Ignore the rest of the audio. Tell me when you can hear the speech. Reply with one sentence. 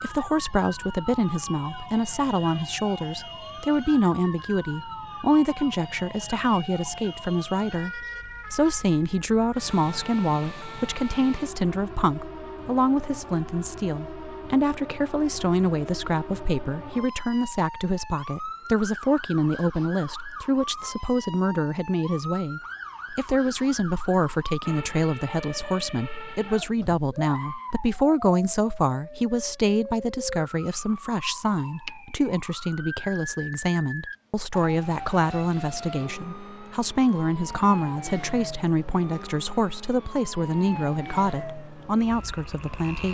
The speech can be heard from 0.0 to 43.1 s.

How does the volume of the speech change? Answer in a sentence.
The volume of the speech stays about the same.